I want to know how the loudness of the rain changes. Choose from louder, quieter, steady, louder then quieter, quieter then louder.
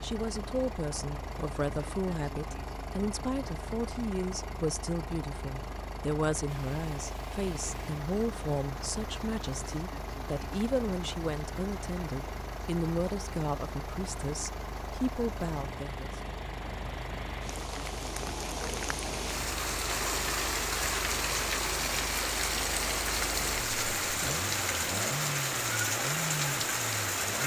louder.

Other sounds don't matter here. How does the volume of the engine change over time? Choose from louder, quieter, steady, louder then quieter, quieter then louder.
steady.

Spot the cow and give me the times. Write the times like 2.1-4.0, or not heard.
not heard.